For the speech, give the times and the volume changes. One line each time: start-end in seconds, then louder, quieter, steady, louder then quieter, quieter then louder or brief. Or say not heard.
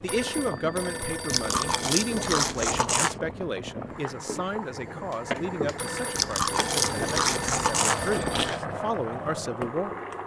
0.0-9.9 quieter then louder.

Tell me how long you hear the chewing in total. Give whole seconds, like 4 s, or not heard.
4 s.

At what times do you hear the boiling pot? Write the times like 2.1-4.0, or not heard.
0.0-10.2.